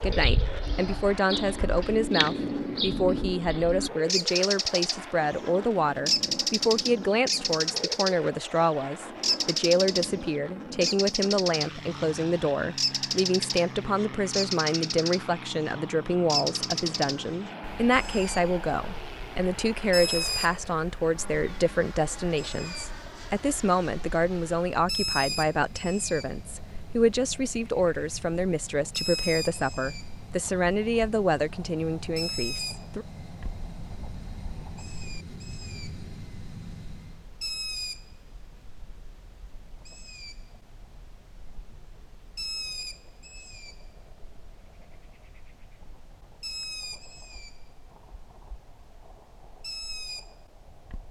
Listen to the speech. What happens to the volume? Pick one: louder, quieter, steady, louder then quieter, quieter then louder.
steady.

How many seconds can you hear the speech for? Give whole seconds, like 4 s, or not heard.
33 s.